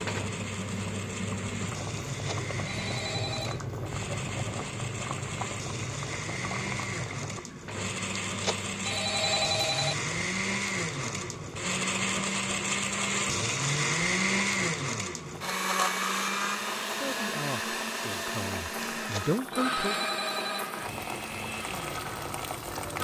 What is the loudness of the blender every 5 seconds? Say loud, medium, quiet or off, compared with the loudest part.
medium, medium, loud, loud, medium.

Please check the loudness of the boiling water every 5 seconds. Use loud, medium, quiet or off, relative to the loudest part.
loud, loud, medium, medium, loud.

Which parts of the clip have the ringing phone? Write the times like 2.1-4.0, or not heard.
2.1-3.6, 8.2-9.9, 18.9-20.6.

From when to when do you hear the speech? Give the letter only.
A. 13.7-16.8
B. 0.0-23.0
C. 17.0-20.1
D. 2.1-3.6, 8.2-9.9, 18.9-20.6
C.